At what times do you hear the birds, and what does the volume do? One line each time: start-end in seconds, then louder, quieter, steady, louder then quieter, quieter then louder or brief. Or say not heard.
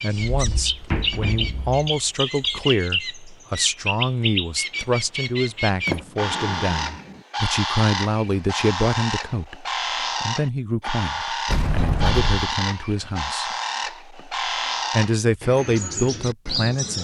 0.0-17.0 steady.